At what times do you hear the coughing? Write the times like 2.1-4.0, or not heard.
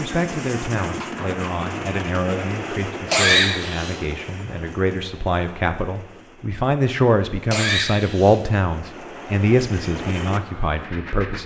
3.1-4.0, 7.5-8.3.